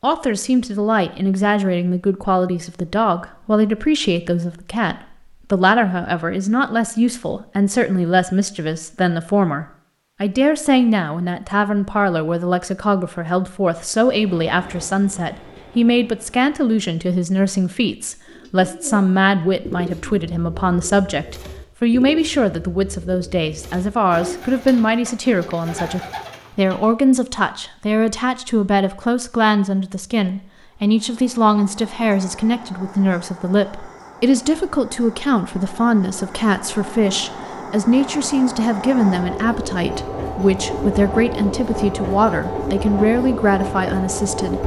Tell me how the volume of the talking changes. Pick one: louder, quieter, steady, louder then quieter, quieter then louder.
steady.